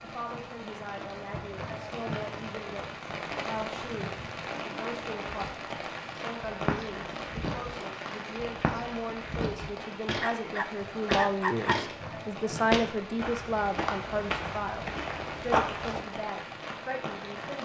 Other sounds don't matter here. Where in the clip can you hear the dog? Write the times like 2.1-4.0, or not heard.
10.2-11.8.